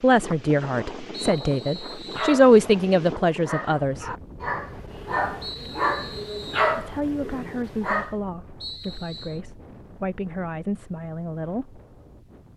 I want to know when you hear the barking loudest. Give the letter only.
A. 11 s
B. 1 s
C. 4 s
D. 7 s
D.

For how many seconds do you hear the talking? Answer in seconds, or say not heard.
9 s.